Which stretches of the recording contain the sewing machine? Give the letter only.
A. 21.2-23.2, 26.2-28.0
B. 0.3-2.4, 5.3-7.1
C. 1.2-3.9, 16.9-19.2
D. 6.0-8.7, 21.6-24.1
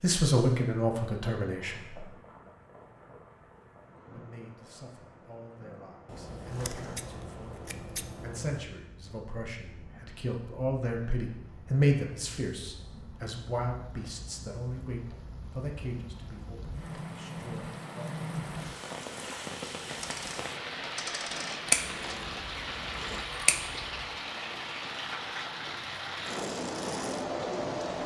A.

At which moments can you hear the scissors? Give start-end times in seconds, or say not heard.
6.0-8.7, 21.6-24.1.